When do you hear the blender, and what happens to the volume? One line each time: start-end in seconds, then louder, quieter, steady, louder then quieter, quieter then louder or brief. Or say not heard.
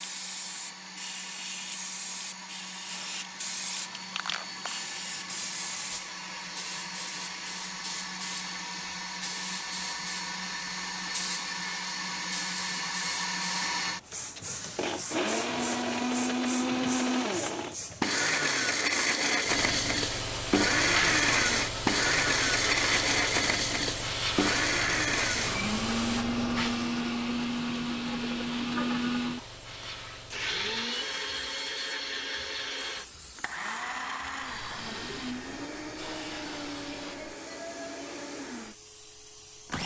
0.0-39.8 louder then quieter.